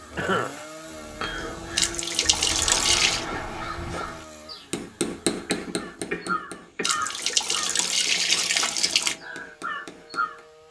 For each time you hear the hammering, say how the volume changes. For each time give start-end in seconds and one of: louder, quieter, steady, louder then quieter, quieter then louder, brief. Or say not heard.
4.6-10.6 quieter then louder.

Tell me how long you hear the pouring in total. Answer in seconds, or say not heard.
4 s.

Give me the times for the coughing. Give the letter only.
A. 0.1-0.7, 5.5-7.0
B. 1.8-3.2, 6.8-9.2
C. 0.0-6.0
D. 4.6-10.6
A.